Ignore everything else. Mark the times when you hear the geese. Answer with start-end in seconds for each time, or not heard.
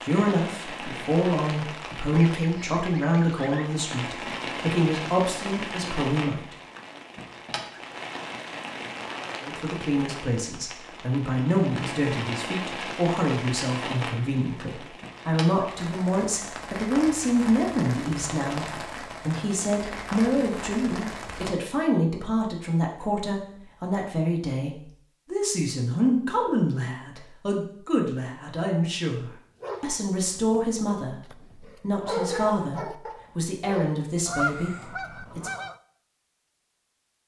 2.1-3.8, 34.2-35.8.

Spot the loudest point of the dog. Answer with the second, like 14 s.
32 s.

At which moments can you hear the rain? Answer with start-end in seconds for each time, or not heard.
0.0-21.5.